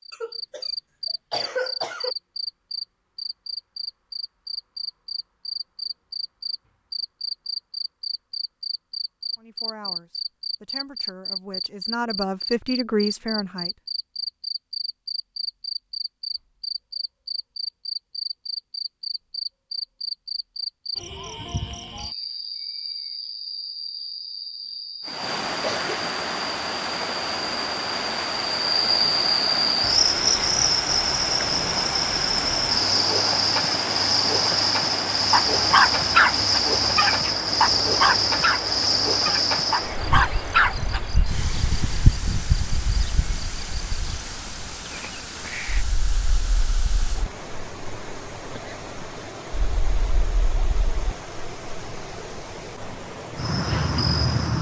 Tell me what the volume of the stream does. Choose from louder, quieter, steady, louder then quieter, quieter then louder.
quieter.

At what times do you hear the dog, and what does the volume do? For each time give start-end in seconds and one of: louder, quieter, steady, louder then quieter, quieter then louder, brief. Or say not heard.
35.3-41.1 quieter then louder.